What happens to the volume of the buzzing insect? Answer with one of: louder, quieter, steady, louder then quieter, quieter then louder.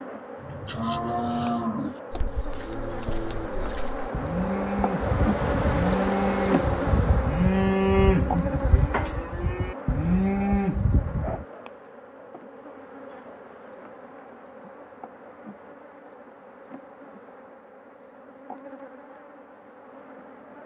louder then quieter.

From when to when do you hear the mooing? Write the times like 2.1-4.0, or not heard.
0.4-11.4.